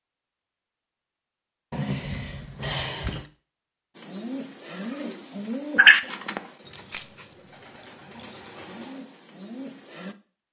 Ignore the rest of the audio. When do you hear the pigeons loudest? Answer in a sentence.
The loudest moment of the pigeons is at 6 seconds.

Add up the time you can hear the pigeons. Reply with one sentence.
You can hear the pigeons for 6 seconds altogether.